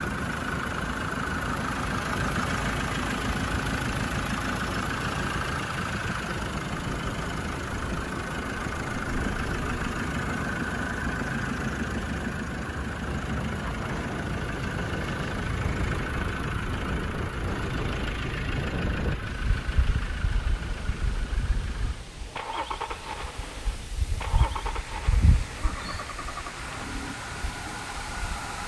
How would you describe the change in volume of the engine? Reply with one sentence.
The loudness of the engine goes down.